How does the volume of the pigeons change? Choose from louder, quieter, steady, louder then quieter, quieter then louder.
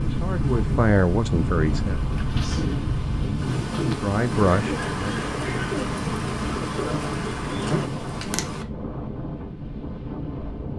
louder.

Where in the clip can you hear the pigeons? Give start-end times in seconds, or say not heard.
2.0-7.9.